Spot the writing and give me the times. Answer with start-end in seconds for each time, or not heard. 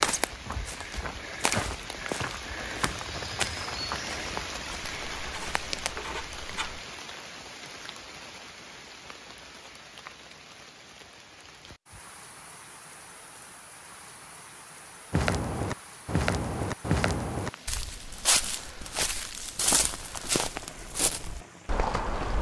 5.0-6.8.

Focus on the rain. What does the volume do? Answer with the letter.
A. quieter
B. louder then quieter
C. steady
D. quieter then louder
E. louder
A.